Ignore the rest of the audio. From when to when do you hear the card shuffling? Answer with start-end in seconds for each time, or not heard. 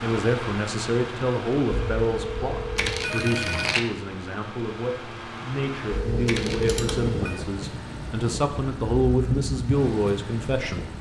2.8-3.8, 6.2-6.8.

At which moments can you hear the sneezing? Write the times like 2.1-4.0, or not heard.
not heard.